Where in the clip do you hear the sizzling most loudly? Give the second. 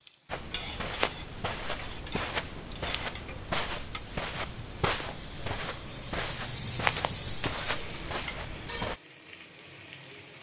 7 s.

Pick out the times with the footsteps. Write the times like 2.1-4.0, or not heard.
0.2-9.0.